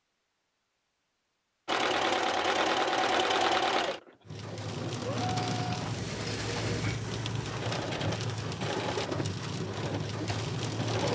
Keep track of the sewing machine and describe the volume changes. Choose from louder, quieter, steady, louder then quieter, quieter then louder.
quieter.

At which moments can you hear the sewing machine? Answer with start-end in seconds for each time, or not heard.
1.6-11.0.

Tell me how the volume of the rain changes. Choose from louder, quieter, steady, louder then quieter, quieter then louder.
steady.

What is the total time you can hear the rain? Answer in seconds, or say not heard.
7 s.